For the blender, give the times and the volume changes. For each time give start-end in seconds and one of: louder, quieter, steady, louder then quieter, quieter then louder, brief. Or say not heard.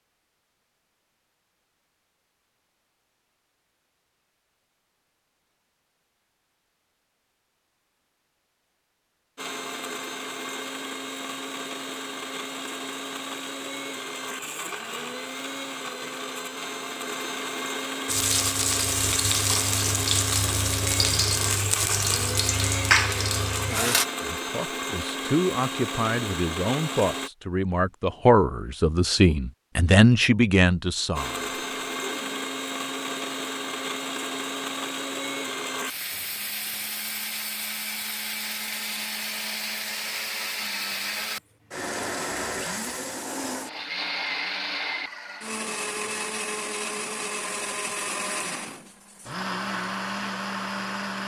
9.3-27.3 steady
31.1-51.2 steady.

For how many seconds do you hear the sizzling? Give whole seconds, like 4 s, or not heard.
6 s.